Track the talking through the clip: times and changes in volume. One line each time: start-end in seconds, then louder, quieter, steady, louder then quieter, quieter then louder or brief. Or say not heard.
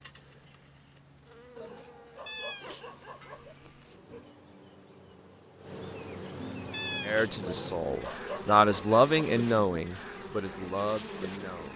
7.0-11.7 louder then quieter.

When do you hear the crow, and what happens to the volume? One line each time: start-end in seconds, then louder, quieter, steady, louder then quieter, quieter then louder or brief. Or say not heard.
not heard.